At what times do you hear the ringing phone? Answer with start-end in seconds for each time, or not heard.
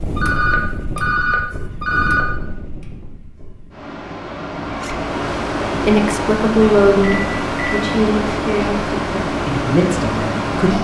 0.1-2.2, 7.0-7.9.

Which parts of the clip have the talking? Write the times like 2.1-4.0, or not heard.
5.7-10.7.